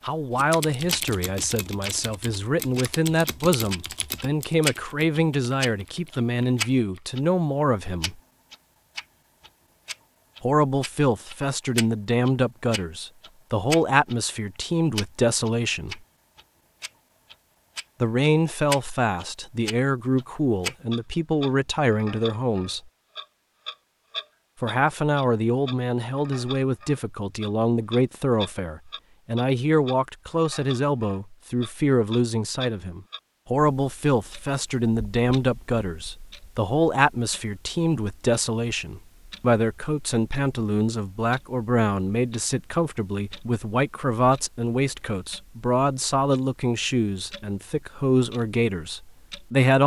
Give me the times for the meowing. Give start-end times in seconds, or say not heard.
not heard.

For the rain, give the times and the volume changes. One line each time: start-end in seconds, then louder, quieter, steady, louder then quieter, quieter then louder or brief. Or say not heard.
not heard.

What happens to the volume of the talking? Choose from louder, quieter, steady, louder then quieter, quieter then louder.
steady.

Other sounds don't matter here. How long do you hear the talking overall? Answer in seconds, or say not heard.
44 s.